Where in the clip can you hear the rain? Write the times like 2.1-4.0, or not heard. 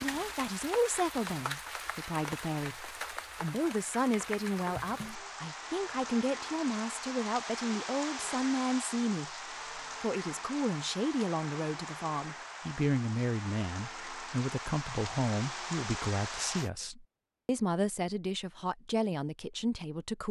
0.0-16.7.